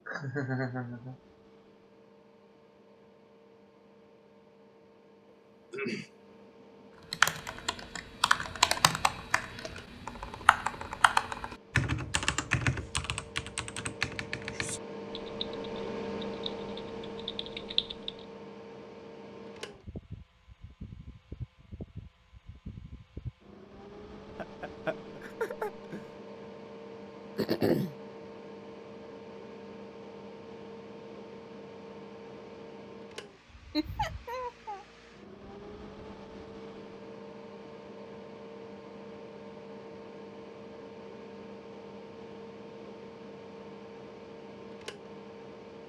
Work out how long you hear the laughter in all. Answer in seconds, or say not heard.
4 s.